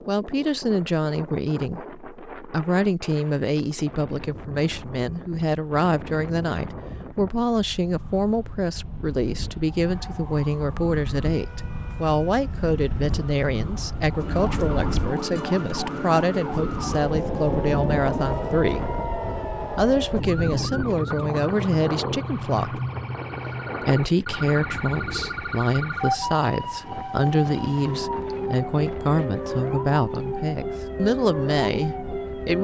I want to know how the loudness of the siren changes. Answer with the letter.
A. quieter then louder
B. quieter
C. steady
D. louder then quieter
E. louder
E.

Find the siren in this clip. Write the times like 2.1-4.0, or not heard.
9.8-32.5.